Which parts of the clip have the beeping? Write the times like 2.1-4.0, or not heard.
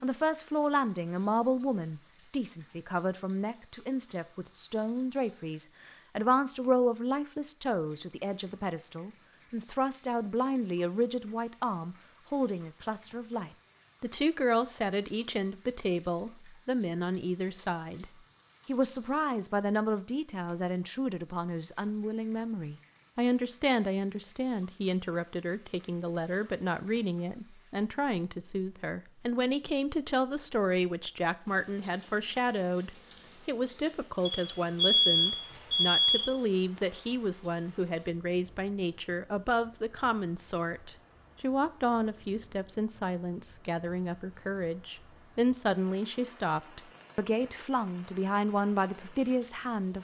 34.2-36.2.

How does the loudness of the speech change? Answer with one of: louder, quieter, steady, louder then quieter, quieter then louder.
steady.